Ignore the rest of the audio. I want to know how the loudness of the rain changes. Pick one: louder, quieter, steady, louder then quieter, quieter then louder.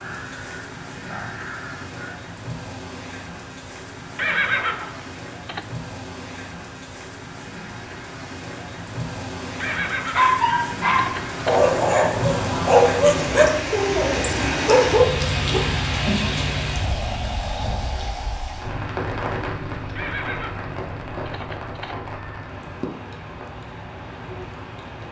louder then quieter.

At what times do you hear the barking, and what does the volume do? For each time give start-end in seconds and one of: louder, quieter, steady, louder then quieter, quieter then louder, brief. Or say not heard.
9.7-15.6 steady.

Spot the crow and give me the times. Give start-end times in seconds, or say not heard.
0.0-2.1.